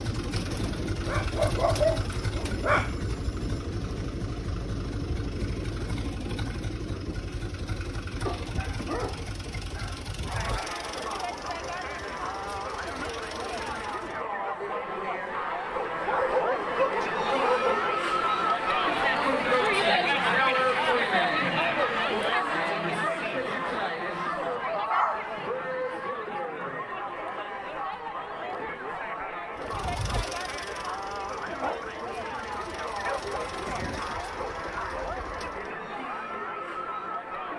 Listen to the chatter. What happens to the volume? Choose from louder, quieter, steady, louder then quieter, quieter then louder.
louder then quieter.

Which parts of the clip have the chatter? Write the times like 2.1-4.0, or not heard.
10.2-37.5.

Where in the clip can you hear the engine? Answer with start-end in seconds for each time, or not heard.
0.0-14.2, 29.6-35.7.